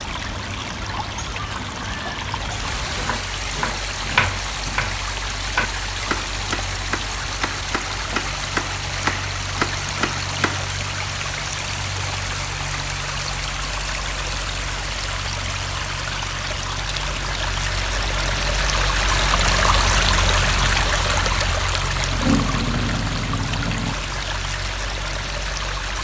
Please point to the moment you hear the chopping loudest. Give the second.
4 s.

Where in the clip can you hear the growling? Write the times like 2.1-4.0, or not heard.
22.1-23.9.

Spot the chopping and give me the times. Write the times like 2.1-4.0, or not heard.
3.0-10.7.